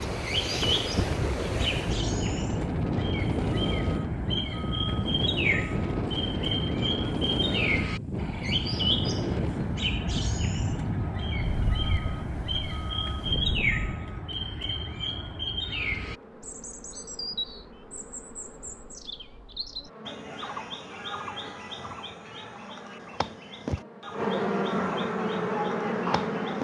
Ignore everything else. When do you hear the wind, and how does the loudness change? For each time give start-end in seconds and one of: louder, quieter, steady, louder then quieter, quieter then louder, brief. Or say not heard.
0.0-14.1 quieter.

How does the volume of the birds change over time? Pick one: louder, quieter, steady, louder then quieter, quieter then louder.
quieter.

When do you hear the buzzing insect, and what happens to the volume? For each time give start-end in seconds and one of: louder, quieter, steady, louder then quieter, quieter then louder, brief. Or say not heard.
15.8-26.5 louder.